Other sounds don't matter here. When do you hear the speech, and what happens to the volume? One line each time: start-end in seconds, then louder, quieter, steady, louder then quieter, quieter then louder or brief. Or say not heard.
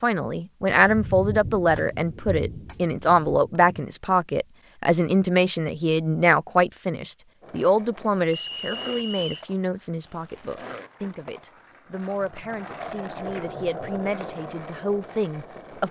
0.0-15.8 quieter.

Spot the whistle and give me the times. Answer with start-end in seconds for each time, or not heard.
8.2-9.4.